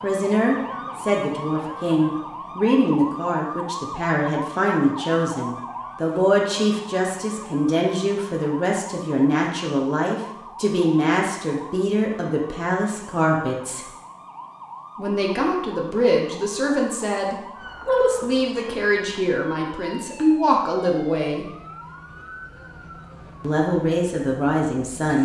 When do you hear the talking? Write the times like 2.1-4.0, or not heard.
0.0-13.8, 14.9-21.5, 23.4-25.1.